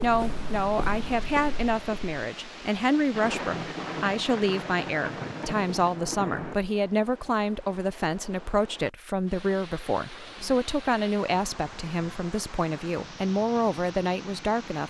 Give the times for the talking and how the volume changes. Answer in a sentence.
The talking can be heard from 0.0 to 14.8 s, at a steady volume.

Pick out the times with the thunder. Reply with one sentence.
You can hear the thunder from 3.1 to 6.5 s.